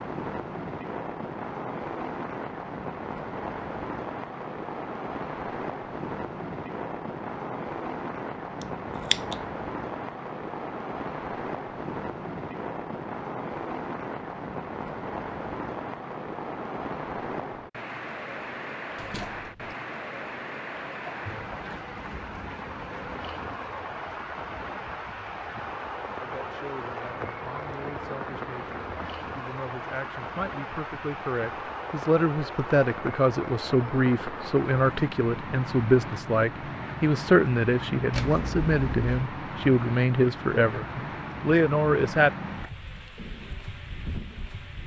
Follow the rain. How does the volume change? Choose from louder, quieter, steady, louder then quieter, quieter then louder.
steady.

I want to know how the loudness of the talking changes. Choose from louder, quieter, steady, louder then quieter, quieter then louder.
louder.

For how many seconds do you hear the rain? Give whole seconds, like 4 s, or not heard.
45 s.